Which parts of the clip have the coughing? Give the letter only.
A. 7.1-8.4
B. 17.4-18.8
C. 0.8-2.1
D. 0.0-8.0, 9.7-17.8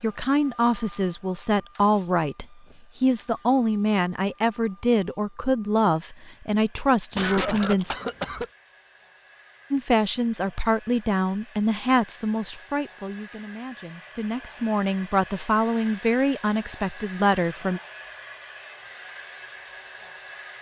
A.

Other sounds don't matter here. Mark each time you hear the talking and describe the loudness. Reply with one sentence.
You can hear the talking from 0.0 to 8.0 s, at a steady volume; and from 9.7 to 17.8 s, getting quieter then louder.